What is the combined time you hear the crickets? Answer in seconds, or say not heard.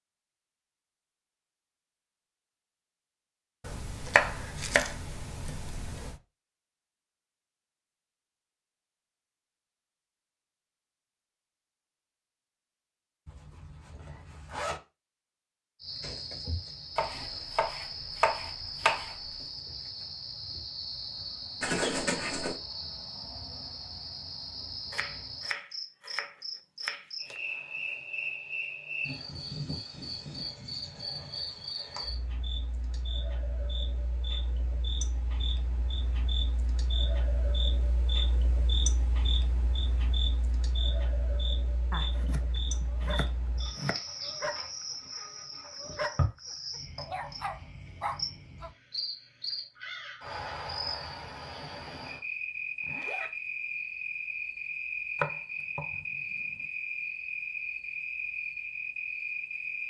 44 s.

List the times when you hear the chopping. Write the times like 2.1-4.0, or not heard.
3.6-6.2, 16.9-19.4, 24.9-27.4, 41.9-44.0, 55.1-56.6.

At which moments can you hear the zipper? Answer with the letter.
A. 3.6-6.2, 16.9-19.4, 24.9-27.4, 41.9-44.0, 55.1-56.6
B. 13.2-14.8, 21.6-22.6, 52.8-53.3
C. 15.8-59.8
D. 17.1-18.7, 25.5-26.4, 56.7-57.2
B.